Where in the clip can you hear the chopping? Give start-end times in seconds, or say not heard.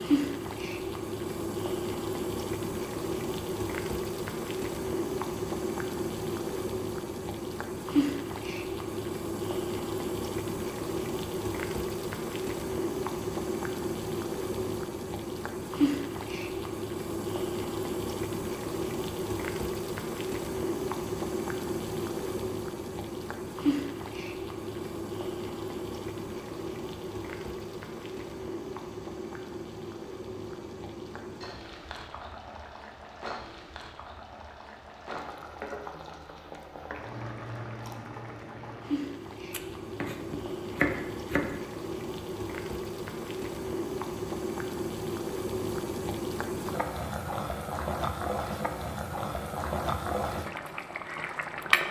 39.5-41.5.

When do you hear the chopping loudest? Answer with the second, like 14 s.
41 s.